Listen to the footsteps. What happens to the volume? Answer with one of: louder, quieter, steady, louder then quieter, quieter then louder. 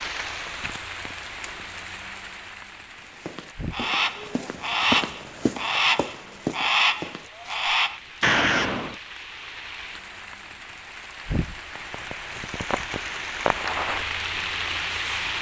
louder then quieter.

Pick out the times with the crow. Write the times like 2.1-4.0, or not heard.
3.7-8.9.